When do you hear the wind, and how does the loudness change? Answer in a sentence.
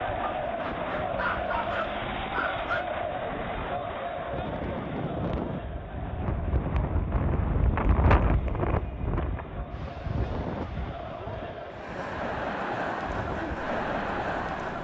The wind can be heard from 0.0 to 14.7 s, getting louder then quieter.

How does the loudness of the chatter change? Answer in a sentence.
The loudness of the chatter goes down, then up.